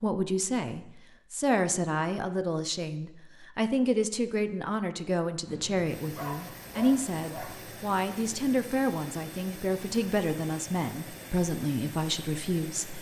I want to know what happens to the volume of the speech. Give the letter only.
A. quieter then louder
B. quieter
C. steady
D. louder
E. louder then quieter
C.